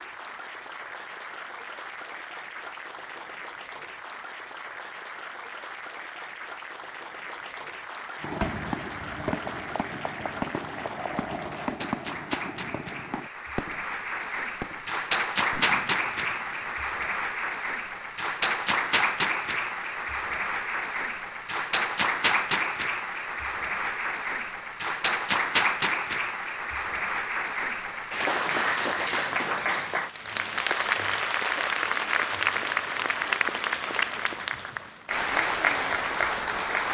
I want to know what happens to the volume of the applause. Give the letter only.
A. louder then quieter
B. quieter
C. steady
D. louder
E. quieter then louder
D.